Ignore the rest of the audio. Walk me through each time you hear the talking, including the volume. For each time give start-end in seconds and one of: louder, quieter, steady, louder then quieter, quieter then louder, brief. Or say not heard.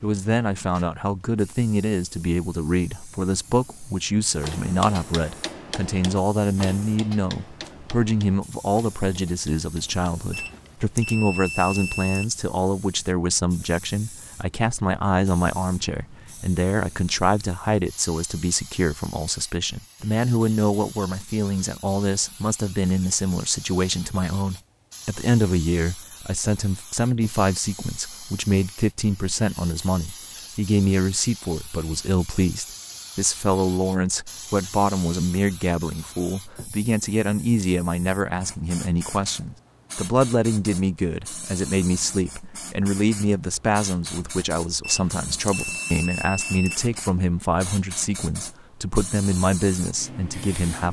0.0-50.8 steady.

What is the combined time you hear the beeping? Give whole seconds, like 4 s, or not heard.
4 s.